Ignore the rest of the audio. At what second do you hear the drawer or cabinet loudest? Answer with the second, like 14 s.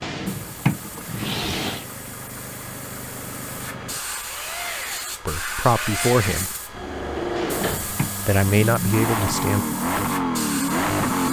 1 s.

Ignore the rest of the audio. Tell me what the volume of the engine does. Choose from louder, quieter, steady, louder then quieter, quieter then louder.
louder.